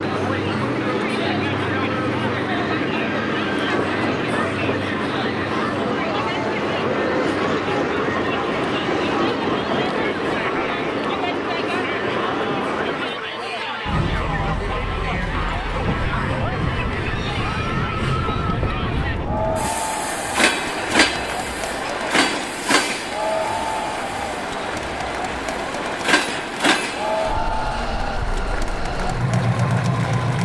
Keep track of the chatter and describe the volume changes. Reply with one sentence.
The volume of the chatter stays about the same.